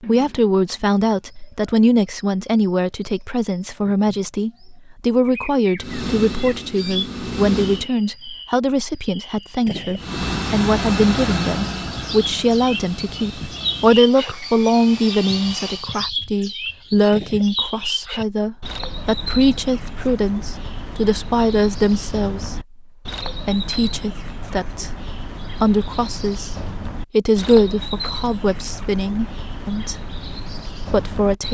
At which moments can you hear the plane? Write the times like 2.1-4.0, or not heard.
5.8-7.9, 9.9-15.9.